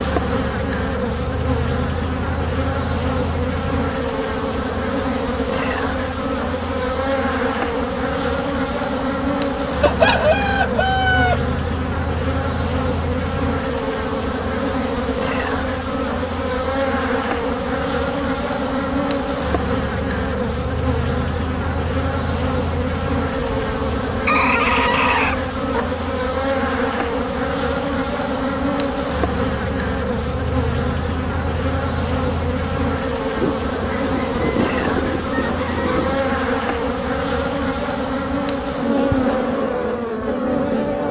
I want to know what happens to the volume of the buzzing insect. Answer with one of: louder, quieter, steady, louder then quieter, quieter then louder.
steady.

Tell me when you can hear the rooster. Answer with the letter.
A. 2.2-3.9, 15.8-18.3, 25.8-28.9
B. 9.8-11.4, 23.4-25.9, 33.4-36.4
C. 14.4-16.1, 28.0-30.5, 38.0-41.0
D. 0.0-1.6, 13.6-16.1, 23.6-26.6
B.